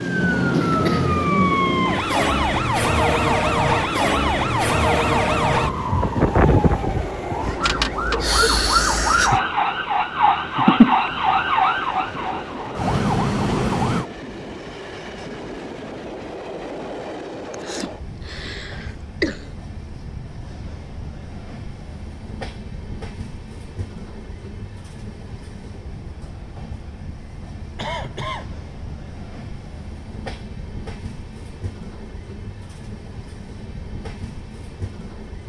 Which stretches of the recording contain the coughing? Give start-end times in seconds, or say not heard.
0.5-1.2, 17.5-19.5, 27.8-28.5.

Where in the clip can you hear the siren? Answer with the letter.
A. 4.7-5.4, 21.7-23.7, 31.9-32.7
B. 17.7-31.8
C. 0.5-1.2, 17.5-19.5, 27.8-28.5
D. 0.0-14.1
D.